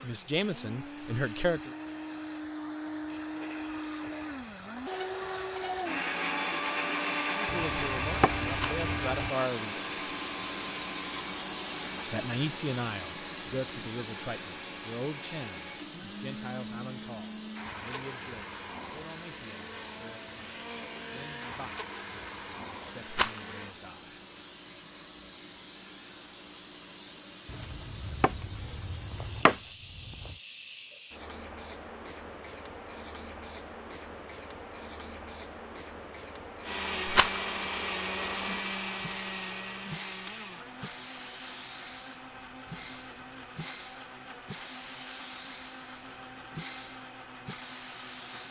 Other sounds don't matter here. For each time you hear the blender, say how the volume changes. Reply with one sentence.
You can hear the blender from 0.0 to 23.8 s, getting louder then quieter; and from 36.6 to 48.4 s, getting quieter.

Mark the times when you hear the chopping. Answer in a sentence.
You can hear the chopping from 7.5 to 9.2 s and from 27.4 to 30.4 s.